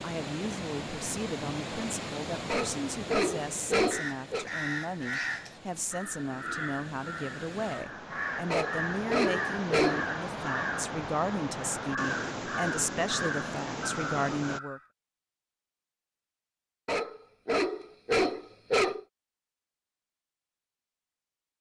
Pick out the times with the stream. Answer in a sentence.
The stream can be heard from 0.0 to 14.6 s.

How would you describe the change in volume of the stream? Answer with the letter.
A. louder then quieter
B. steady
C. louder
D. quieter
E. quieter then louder
E.